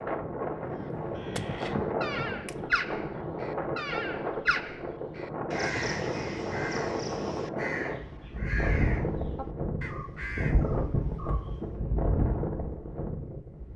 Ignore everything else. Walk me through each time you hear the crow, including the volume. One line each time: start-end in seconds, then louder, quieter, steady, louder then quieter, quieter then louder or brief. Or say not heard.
0.7-11.8 quieter.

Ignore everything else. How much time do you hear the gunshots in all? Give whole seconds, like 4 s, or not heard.
2 s.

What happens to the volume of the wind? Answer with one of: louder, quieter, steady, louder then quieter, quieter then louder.
steady.